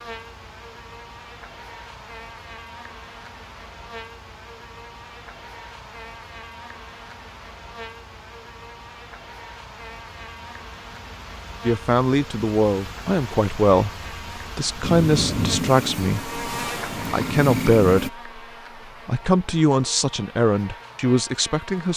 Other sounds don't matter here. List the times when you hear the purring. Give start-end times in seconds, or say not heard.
14.8-18.1.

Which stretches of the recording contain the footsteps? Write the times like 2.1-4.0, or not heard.
not heard.